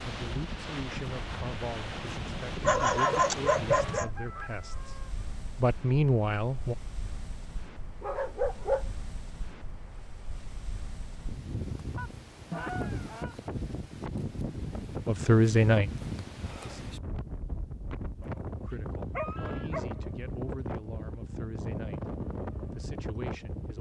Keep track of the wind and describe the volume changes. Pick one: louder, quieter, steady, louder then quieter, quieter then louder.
quieter then louder.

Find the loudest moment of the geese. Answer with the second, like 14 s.
13 s.